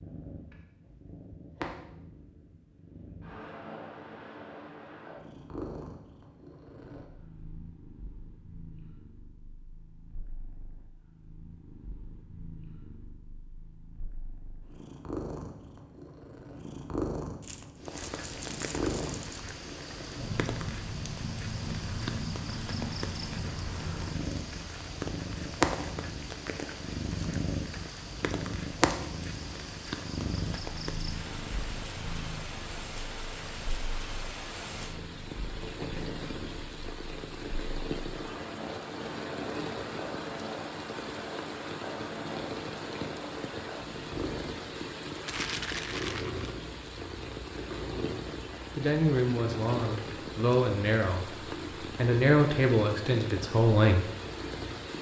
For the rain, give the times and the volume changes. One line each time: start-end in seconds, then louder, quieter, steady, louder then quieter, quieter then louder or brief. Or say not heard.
17.8-54.9 steady.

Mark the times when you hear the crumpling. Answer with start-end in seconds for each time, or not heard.
17.4-19.2, 45.2-46.5.